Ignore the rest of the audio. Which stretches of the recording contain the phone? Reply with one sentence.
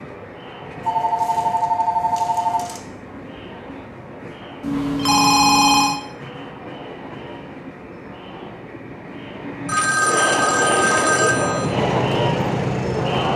You can hear the phone from 0.8 to 2.8 s, from 4.6 to 6.0 s and from 9.7 to 11.7 s.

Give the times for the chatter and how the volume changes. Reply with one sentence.
You can hear the chatter from 0.0 to 13.3 s, getting louder.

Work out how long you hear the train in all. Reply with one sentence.
The train can be heard for 13 seconds in total.